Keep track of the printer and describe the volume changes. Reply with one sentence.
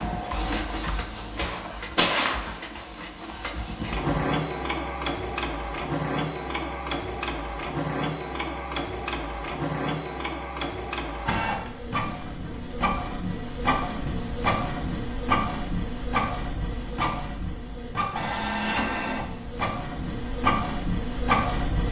The loudness of the printer stays about the same.